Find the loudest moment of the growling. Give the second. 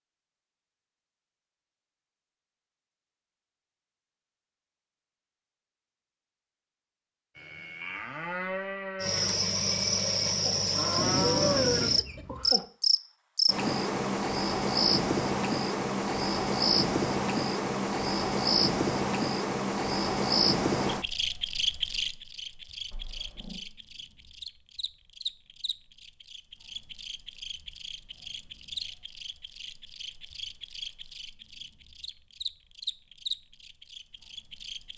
11 s.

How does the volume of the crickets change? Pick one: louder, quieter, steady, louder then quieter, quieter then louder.
quieter.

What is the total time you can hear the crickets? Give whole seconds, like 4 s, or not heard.
26 s.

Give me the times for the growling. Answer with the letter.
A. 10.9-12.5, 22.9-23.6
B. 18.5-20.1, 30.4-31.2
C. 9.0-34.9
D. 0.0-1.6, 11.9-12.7
A.